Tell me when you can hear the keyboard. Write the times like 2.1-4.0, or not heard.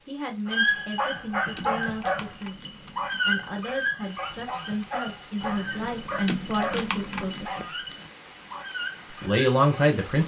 0.7-3.2, 5.4-7.5.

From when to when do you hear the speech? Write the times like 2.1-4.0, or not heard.
0.1-7.8, 9.1-10.2.